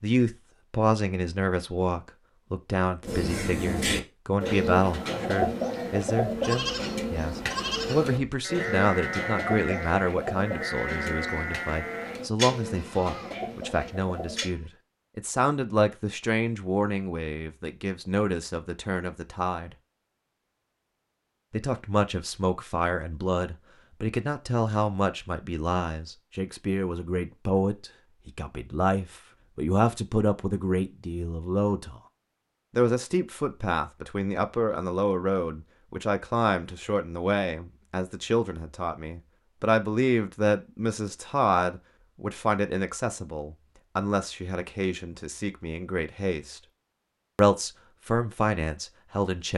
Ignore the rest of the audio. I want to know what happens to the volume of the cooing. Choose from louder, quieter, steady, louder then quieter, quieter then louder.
quieter.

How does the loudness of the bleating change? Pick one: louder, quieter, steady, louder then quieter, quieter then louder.
quieter.